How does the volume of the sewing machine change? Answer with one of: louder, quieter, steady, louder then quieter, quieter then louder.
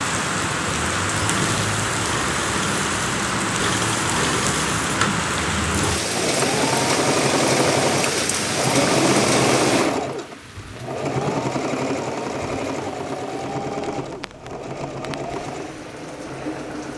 louder then quieter.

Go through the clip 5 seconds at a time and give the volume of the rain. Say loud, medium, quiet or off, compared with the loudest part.
loud, loud, quiet, quiet.